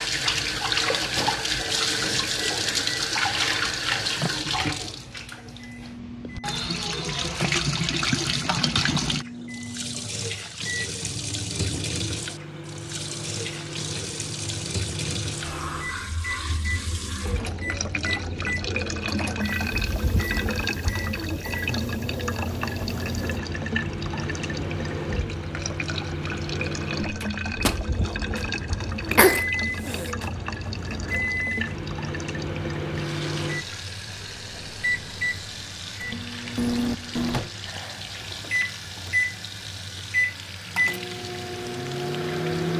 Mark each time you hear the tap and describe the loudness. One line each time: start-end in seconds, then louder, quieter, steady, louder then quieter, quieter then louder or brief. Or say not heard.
0.0-42.7 quieter.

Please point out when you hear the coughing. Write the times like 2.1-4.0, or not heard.
29.1-30.1.